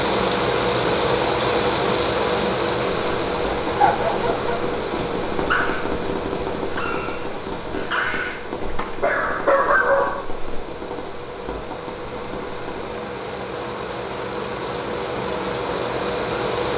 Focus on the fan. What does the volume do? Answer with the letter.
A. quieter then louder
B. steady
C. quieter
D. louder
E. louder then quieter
A.